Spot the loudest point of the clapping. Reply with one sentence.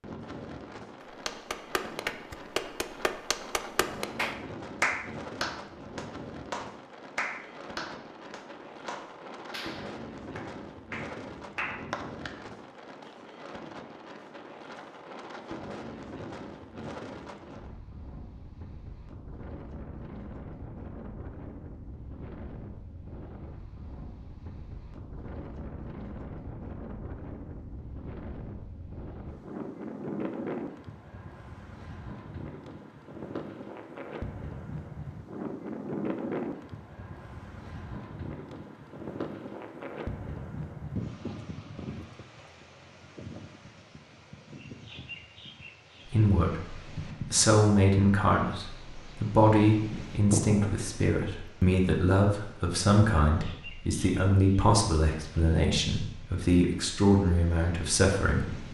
The volume of the clapping peaks at 5 seconds.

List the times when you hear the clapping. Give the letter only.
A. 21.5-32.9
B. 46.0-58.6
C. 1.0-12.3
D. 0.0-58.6
C.